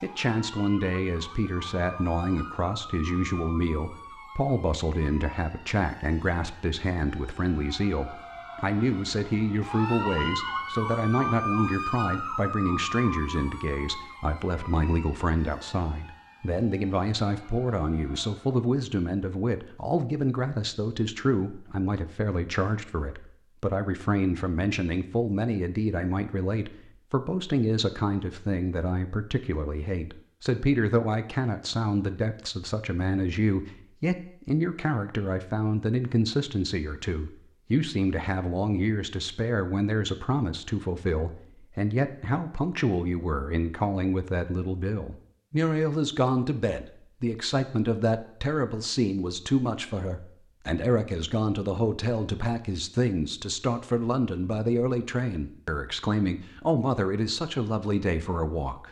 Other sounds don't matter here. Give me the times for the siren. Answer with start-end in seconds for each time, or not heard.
0.0-18.6.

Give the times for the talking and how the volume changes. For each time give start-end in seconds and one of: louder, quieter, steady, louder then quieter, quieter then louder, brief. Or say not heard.
0.0-58.8 steady.